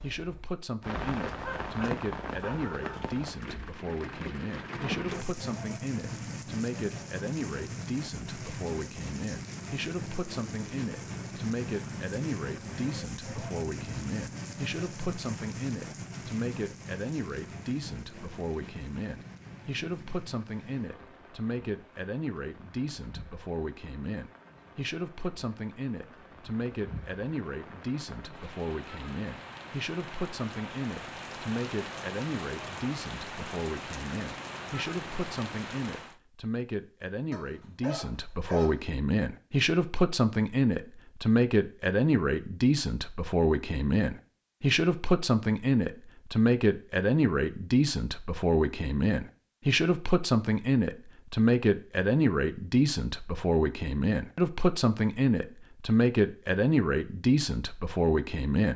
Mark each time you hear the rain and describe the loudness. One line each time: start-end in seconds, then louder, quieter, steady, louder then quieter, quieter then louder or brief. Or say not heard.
0.0-36.1 quieter then louder.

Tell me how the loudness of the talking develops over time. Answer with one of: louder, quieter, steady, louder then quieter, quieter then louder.
louder.